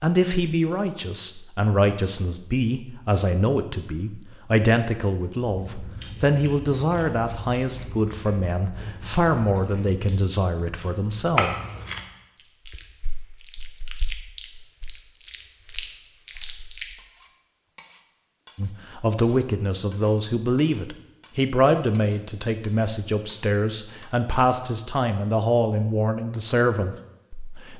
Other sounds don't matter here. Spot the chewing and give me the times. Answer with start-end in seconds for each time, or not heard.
5.6-16.9.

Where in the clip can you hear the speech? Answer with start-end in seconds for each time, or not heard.
0.0-11.6, 18.6-27.7.